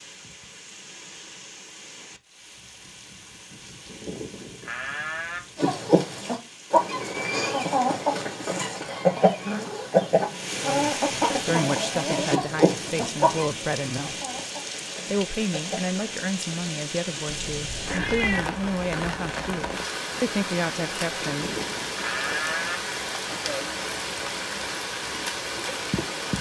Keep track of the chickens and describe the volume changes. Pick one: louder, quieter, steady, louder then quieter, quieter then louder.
quieter.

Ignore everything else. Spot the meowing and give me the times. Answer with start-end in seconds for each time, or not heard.
17.2-18.4.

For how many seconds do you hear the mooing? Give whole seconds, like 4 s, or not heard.
3 s.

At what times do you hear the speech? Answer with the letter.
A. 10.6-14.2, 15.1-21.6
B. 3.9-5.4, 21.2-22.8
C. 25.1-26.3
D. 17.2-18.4
A.